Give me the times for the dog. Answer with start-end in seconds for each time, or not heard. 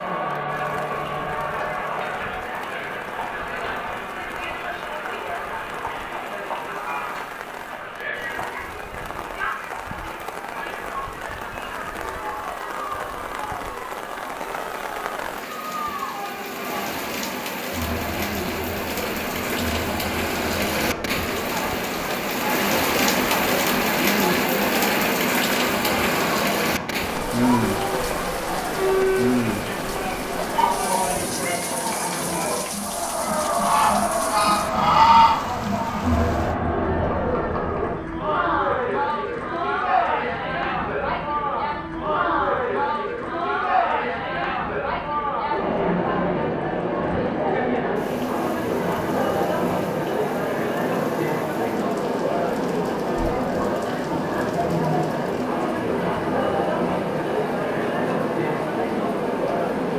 not heard.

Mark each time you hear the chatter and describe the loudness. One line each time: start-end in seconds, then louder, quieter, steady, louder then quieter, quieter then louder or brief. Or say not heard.
0.0-59.9 louder.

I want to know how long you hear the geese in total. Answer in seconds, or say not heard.
2 s.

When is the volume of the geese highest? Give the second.
35 s.